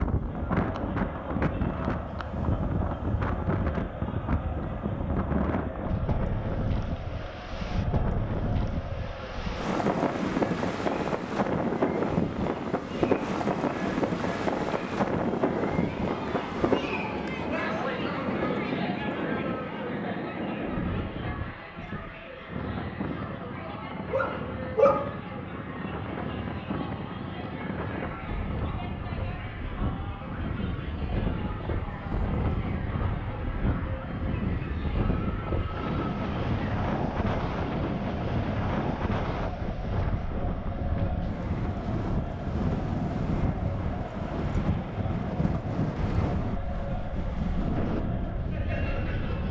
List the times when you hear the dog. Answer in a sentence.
You can hear the dog from 24.1 to 25.1 s.